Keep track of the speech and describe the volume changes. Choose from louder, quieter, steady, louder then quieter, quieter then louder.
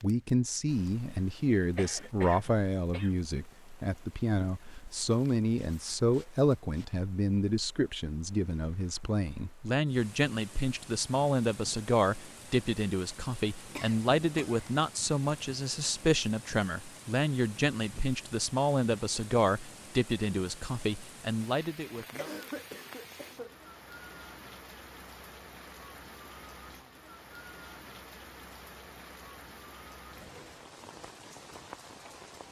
steady.